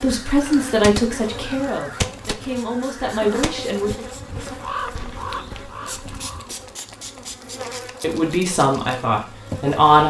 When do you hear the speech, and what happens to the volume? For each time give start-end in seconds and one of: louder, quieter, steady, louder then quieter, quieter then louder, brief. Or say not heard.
0.0-4.0 quieter then louder
8.0-10.0 brief.